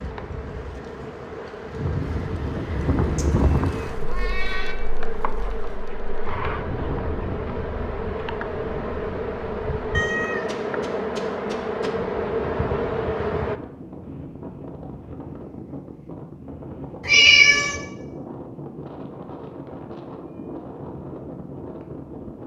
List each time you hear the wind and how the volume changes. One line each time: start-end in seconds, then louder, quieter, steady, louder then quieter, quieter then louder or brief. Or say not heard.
0.0-22.4 quieter.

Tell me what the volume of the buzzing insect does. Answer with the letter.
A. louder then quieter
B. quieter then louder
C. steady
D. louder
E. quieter
D.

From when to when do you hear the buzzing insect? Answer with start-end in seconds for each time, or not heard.
0.0-13.6.